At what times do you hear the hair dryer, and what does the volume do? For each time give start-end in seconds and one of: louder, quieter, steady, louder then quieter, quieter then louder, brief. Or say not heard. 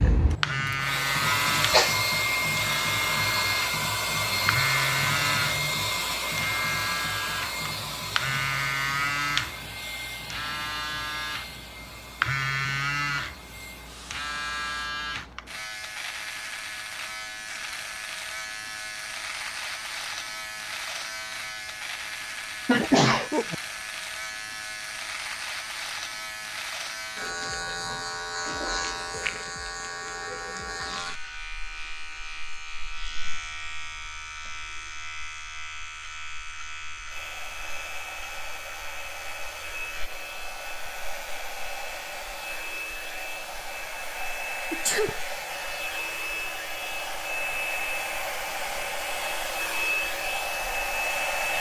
0.0-14.8 quieter
37.0-51.5 louder.